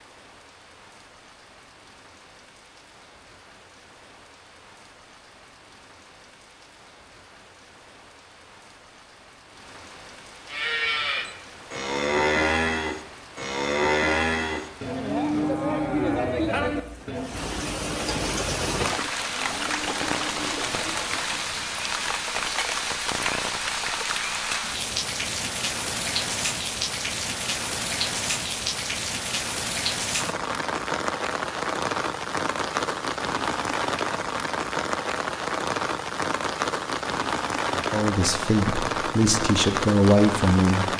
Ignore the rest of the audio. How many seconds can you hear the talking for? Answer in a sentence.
You can hear the talking for 3 seconds altogether.